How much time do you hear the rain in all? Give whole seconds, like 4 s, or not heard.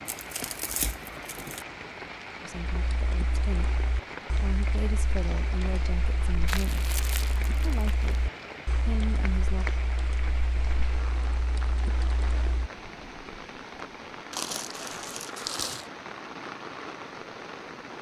18 s.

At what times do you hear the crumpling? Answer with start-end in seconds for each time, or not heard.
0.1-1.6, 6.5-8.1, 14.3-15.9.